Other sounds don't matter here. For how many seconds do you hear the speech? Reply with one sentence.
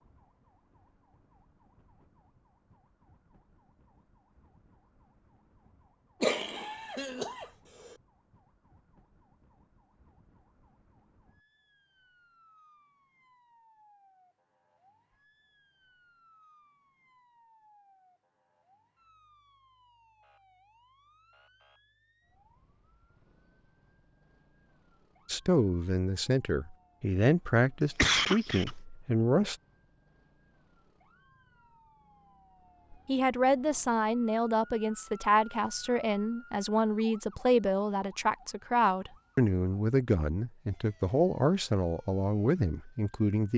You can hear the speech for 15 seconds altogether.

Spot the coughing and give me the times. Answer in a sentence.
The coughing can be heard from 6.2 to 8.0 s and from 27.8 to 28.7 s.